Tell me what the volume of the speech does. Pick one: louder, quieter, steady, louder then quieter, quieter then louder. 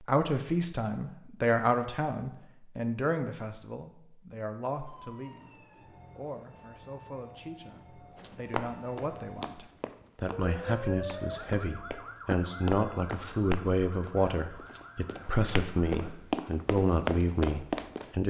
quieter then louder.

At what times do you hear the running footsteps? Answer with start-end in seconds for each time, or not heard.
8.2-18.1.